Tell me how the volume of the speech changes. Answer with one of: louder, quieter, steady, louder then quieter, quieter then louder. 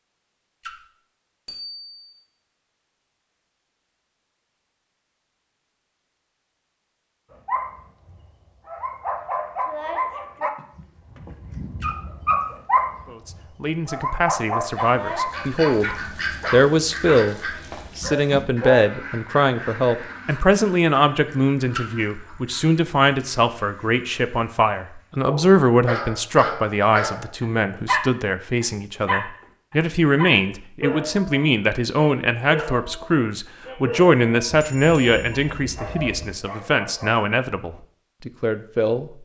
steady.